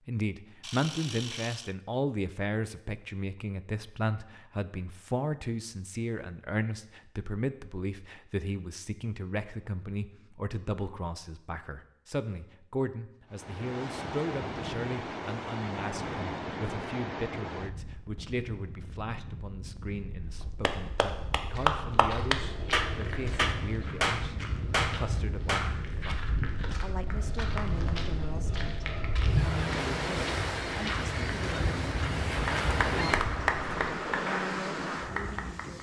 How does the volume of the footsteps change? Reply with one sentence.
The volume of the footsteps stays about the same.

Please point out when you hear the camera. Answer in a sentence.
The camera can be heard from 0.6 to 1.8 s.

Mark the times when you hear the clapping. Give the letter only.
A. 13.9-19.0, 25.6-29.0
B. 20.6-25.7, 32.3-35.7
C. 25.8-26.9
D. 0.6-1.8
B.